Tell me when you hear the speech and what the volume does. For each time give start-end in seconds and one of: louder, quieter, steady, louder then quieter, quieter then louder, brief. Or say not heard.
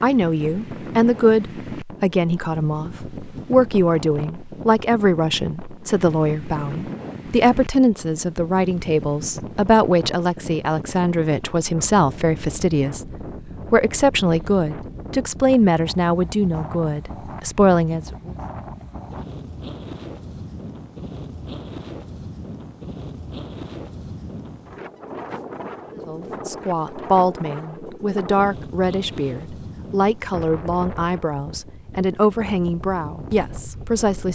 0.0-18.3 steady
25.9-34.3 steady.